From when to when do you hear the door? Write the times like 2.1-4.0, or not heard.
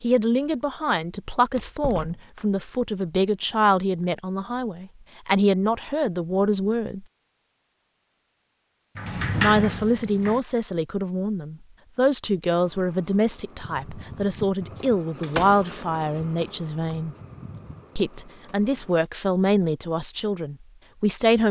1.5-2.4, 8.9-10.4, 15.2-15.7.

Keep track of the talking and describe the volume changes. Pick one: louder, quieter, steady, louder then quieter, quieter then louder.
steady.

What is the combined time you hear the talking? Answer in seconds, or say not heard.
18 s.